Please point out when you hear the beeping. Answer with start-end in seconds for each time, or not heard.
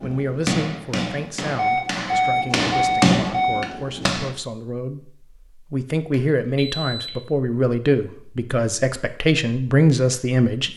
1.6-3.7, 6.1-7.1.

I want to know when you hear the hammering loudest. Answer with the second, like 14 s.
3 s.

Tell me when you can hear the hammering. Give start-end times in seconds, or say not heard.
0.0-4.3.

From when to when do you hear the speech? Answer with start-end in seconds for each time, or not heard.
0.0-10.7.